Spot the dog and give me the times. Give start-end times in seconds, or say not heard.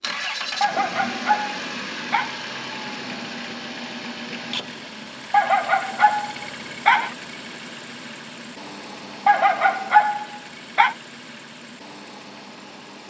0.6-2.4, 5.3-7.2, 9.2-10.9.